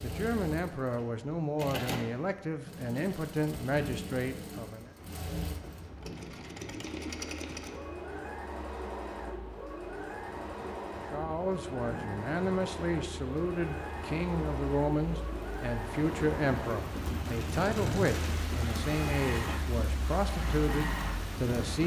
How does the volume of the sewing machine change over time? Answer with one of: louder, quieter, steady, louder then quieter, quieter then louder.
steady.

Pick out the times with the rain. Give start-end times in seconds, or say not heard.
5.0-21.8.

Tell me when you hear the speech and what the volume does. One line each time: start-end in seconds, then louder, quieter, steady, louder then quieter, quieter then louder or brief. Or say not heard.
0.0-4.9 steady
11.1-21.8 steady.